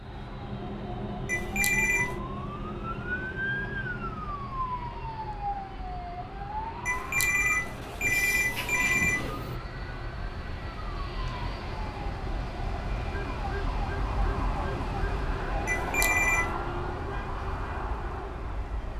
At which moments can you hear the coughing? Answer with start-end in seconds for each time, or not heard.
not heard.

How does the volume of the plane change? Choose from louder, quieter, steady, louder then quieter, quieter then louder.
louder.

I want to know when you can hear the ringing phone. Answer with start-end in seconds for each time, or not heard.
1.2-2.1, 6.8-9.6, 15.7-16.5.